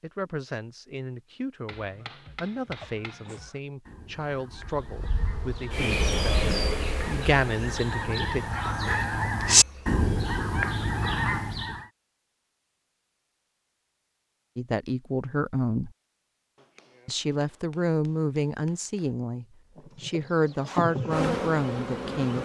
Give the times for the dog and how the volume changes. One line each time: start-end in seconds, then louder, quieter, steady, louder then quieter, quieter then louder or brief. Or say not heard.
not heard.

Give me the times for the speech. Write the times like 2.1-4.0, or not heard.
0.0-8.4, 14.6-15.9, 17.1-22.4.